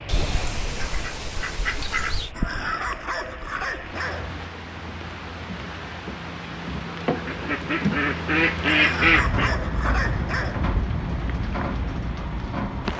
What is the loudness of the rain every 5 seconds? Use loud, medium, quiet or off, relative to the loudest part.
medium, loud, loud.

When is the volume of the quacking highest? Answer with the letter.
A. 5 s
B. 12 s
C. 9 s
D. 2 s
C.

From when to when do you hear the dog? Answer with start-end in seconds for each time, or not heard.
2.3-4.3, 8.7-10.7.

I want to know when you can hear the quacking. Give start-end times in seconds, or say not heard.
0.1-2.3, 7.2-9.6.